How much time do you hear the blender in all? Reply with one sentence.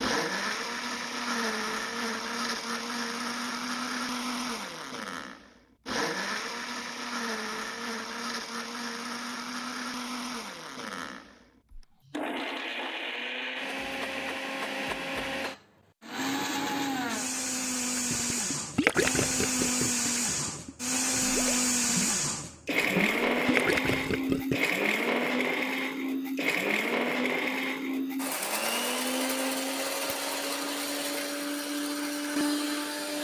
The blender can be heard for 33 seconds in total.